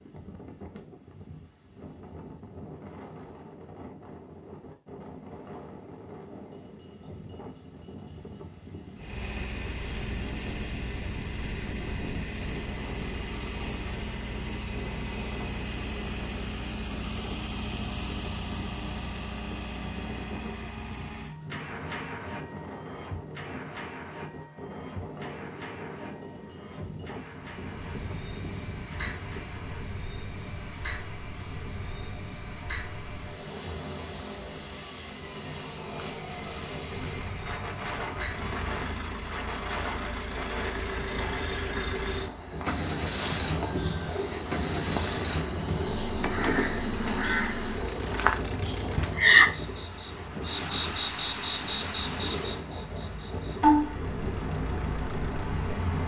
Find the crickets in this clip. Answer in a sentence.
You can hear the crickets from 27.4 to 56.0 s.